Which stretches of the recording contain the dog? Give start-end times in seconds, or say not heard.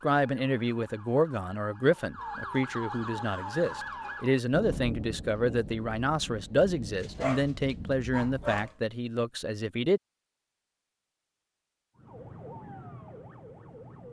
7.0-8.8.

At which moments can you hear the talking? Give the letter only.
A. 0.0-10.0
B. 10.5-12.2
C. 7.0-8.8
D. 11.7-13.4
A.